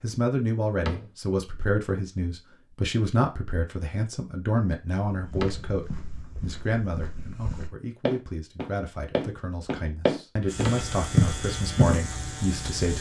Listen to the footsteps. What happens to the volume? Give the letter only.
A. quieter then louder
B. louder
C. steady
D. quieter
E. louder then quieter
B.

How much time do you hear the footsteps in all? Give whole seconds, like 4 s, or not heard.
7 s.